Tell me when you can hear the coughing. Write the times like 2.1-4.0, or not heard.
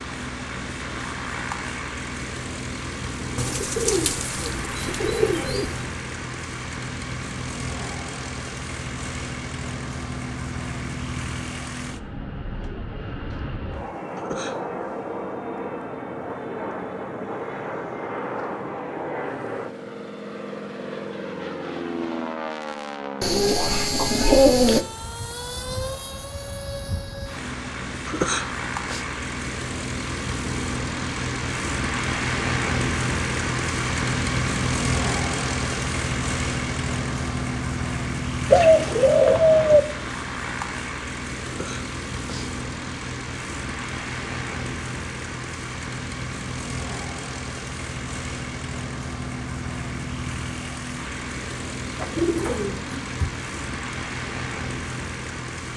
14.2-14.6, 28.1-29.1, 41.5-42.5.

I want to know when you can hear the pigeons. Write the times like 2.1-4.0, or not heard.
3.4-5.8, 23.2-24.9, 38.5-39.8, 52.0-53.4.